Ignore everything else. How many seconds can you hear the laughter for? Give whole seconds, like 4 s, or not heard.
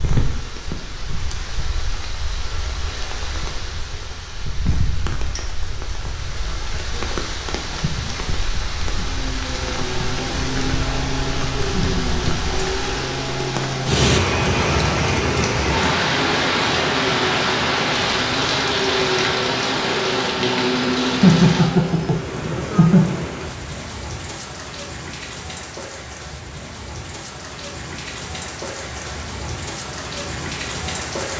3 s.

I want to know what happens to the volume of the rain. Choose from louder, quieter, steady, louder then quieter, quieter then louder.
louder then quieter.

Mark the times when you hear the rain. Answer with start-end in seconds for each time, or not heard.
0.0-31.3.